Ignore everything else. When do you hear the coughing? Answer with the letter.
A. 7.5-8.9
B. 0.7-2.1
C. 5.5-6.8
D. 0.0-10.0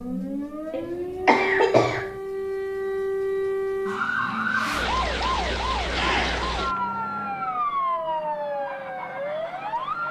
B.